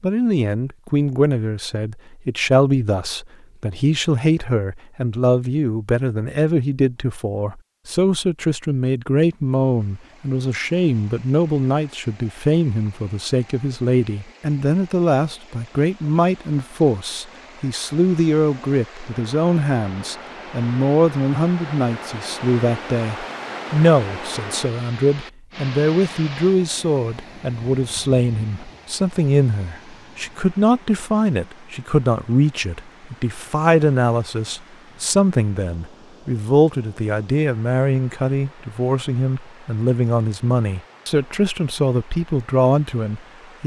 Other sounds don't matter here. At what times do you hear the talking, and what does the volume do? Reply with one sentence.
The talking can be heard from 0.0 to 43.6 s, at a steady volume.